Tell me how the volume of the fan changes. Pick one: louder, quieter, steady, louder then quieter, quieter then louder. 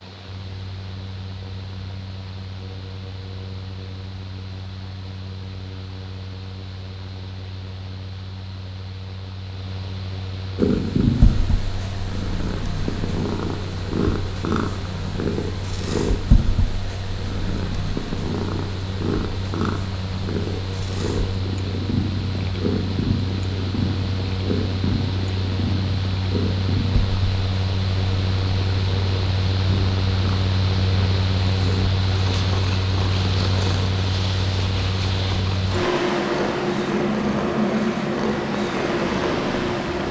louder.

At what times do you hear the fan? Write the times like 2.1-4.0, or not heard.
0.0-40.0.